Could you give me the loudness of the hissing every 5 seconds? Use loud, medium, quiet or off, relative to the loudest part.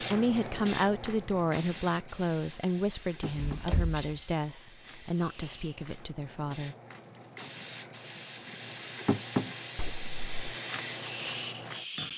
medium, loud, loud.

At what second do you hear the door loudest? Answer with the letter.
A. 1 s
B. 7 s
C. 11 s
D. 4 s
D.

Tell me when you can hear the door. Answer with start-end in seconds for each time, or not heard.
3.2-4.2, 9.8-10.5.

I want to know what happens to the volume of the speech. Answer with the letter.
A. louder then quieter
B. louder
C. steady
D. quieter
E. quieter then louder
D.